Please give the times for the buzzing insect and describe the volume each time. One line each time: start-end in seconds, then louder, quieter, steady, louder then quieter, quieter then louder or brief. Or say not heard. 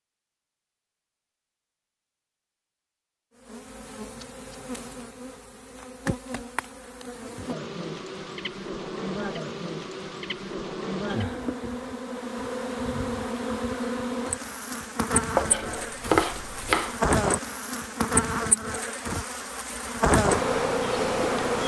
3.4-21.6 louder.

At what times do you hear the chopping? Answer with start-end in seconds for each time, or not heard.
15.3-16.9.